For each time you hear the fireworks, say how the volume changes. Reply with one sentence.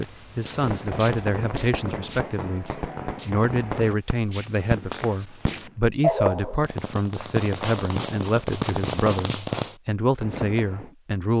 The fireworks can be heard from 0.4 to 10.9 s, getting louder.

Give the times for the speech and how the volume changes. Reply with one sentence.
The speech can be heard from 0.0 to 11.3 s, at a steady volume.